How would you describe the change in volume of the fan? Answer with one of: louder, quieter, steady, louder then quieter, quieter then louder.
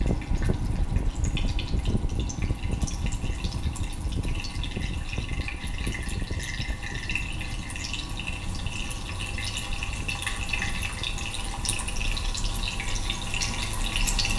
quieter.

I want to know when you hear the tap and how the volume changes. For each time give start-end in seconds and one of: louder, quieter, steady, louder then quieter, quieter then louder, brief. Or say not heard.
0.0-14.3 louder.